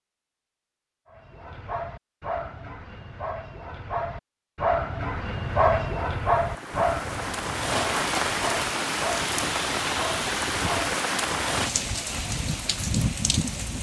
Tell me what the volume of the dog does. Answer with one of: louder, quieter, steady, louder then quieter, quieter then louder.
louder then quieter.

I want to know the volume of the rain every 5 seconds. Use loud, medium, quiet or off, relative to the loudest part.
off, loud, loud.